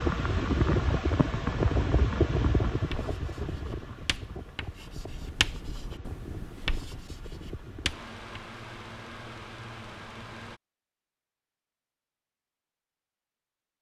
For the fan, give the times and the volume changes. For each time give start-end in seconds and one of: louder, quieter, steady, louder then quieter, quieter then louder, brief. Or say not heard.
0.0-10.6 quieter.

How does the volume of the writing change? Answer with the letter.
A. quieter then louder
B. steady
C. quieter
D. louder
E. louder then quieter
E.